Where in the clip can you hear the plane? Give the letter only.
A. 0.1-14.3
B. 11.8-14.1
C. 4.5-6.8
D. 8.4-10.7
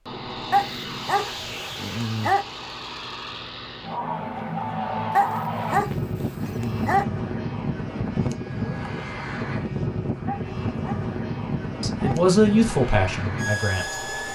A.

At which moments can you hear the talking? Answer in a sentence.
You can hear the talking from 11.8 to 14.1 s.